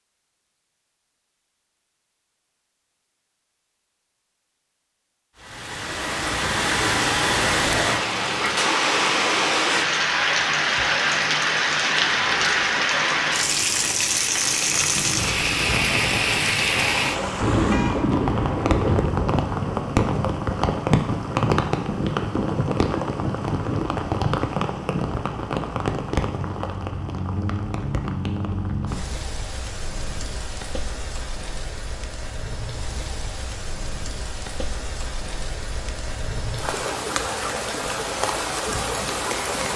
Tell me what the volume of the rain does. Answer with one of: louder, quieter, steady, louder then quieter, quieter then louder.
quieter.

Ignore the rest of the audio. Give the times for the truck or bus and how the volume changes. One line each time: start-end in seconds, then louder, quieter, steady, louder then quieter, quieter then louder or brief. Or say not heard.
not heard.